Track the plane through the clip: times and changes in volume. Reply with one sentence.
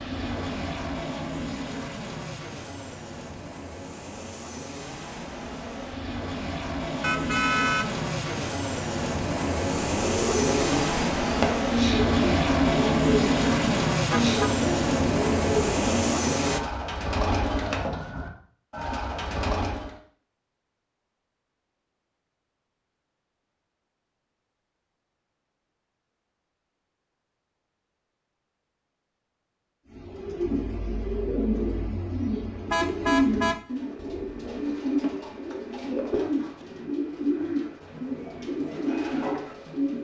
You can hear the plane from 0.0 to 16.6 s, getting louder.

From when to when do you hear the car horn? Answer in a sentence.
You can hear the car horn from 7.0 to 8.0 s, from 14.1 to 14.6 s and from 32.7 to 34.6 s.